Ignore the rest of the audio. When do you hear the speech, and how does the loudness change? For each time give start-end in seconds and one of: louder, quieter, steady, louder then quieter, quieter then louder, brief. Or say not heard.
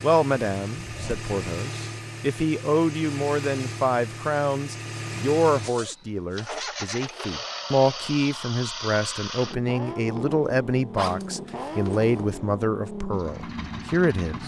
0.0-14.4 steady.